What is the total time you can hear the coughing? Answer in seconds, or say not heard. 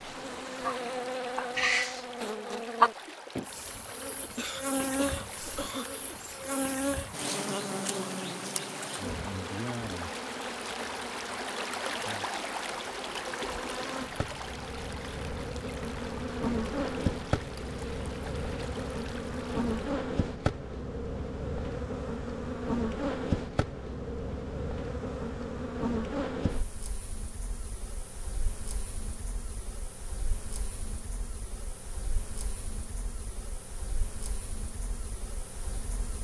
2 s.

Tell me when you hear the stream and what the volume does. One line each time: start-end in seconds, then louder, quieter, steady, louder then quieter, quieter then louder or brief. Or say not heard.
0.0-19.9 louder then quieter.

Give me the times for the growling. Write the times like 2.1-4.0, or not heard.
1.6-2.0.